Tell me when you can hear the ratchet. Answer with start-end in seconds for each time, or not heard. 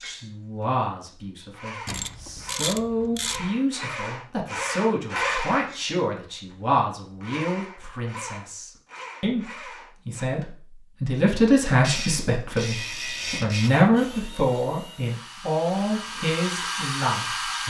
1.9-3.5, 11.8-13.7.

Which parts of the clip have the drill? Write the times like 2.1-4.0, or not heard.
0.0-10.2, 12.8-17.6.